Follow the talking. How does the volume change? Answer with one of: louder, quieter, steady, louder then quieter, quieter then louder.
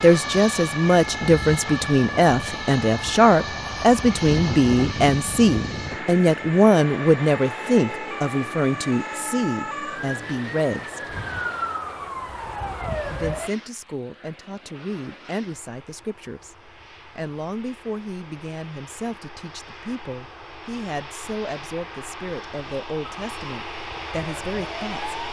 quieter.